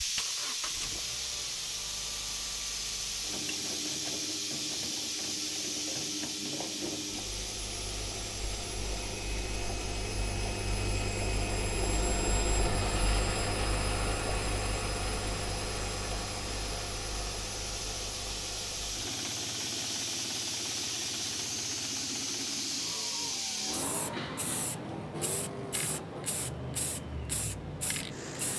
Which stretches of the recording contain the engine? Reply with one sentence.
The engine can be heard from 0.0 to 28.5 s.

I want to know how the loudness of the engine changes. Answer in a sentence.
The volume of the engine goes up, then down.